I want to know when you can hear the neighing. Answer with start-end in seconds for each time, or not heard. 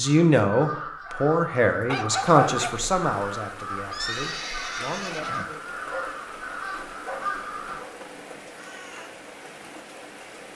3.9-5.5.